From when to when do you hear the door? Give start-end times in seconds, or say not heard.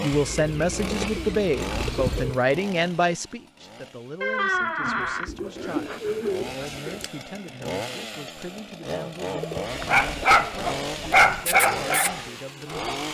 4.2-5.3.